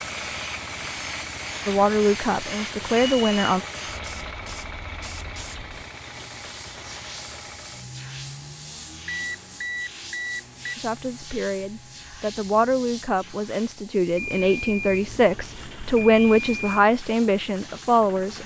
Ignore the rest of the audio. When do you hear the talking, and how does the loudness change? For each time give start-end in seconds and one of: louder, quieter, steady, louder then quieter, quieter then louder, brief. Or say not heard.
1.6-3.6 brief
10.8-18.4 louder.